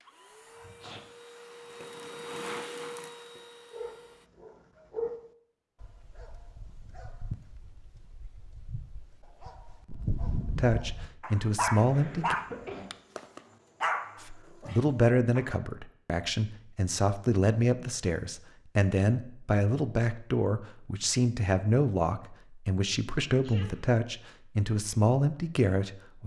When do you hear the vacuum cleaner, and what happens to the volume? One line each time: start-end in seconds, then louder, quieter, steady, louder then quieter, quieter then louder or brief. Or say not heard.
0.0-4.3 louder then quieter.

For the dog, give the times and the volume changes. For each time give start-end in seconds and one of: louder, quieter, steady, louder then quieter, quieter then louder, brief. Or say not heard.
3.7-15.4 quieter then louder.